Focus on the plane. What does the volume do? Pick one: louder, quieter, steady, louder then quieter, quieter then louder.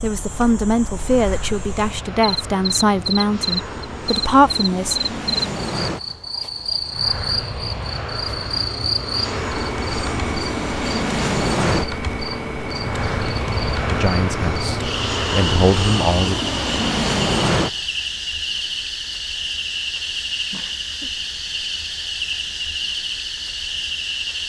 louder.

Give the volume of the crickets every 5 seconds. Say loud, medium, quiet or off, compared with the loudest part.
medium, loud, loud, loud, loud.